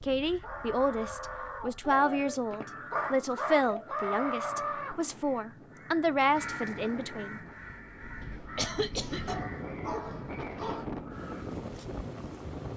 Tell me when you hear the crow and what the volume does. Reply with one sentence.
You can hear the crow from 0.2 to 11.6 s, getting louder then quieter.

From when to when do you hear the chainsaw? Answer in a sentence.
You can't hear the chainsaw here.